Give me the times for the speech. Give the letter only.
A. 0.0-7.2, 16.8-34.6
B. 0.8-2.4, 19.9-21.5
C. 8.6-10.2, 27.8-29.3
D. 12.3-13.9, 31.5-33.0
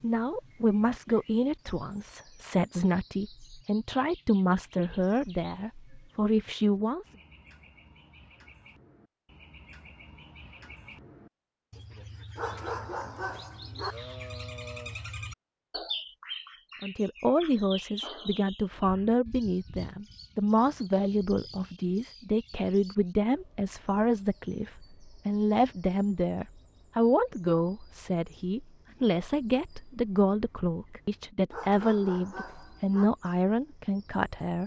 A.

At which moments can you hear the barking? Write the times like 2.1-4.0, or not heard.
12.3-13.9, 31.5-33.0.